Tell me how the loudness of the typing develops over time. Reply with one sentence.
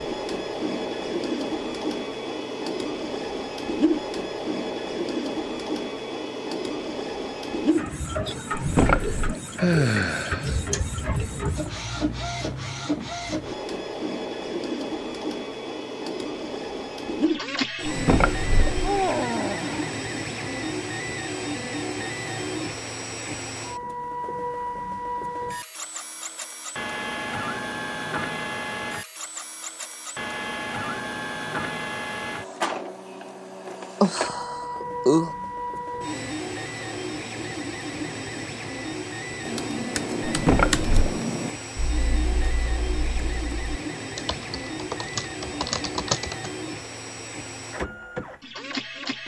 The volume of the typing goes down, then up.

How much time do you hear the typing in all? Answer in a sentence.
You can hear the typing for 7 seconds altogether.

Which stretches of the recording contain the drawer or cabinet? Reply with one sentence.
The drawer or cabinet can be heard from 8.5 to 9.3 s, from 17.9 to 18.9 s and from 40.2 to 41.1 s.